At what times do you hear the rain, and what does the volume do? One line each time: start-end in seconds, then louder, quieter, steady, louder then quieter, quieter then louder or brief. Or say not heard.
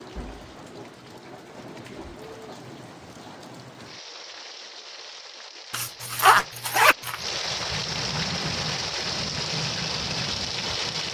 0.0-11.0 louder.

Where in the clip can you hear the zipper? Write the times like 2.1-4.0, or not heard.
5.7-7.2.